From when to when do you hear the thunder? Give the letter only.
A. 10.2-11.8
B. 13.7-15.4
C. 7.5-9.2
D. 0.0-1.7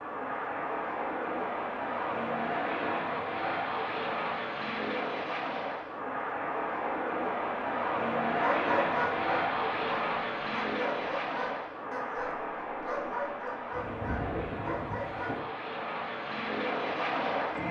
B.